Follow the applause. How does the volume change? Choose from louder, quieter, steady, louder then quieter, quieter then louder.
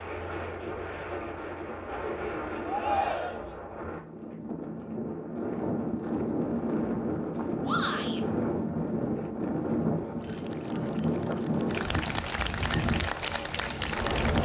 louder.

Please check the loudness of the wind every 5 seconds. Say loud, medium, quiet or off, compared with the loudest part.
medium, loud, loud.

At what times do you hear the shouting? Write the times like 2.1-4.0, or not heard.
2.6-3.5, 7.6-8.2.